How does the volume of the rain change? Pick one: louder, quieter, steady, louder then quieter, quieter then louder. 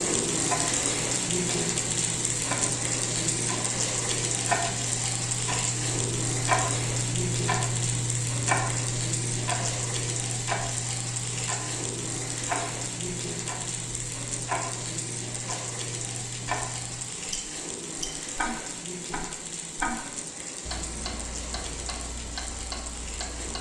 quieter.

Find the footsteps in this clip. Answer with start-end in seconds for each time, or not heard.
not heard.